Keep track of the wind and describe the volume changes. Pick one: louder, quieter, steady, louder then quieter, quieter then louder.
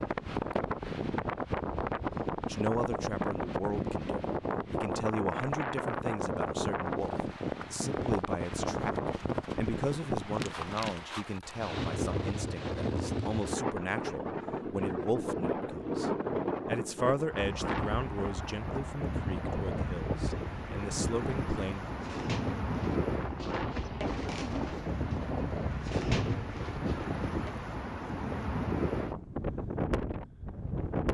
steady.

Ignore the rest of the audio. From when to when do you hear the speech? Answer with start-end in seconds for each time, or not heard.
2.5-21.9.